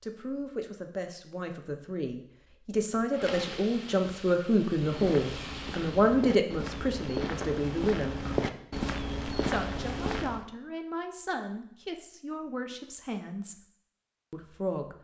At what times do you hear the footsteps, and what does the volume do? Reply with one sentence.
The footsteps can be heard from 4.8 to 10.4 s, getting louder.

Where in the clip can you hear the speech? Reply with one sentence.
The speech can be heard from 0.0 to 8.2 s, from 9.4 to 13.6 s and from 14.3 to 14.9 s.